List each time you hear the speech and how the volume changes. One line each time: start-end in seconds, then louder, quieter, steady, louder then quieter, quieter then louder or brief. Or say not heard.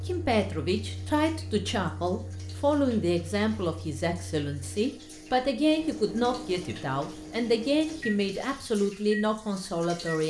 0.1-10.2 steady.